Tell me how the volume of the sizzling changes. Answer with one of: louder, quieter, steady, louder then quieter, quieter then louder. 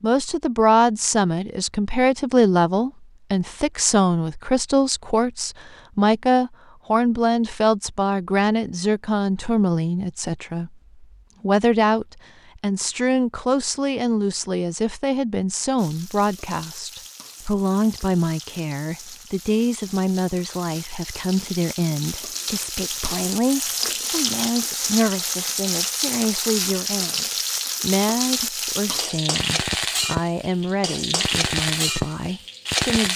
louder.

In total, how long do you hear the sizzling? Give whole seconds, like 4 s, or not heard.
17 s.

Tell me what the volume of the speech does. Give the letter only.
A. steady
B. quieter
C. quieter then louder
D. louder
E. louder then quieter
B.